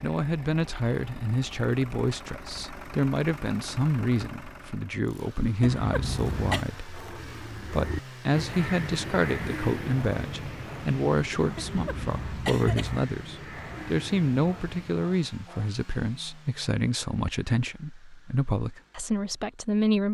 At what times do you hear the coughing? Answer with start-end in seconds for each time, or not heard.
5.6-6.7, 11.6-13.0.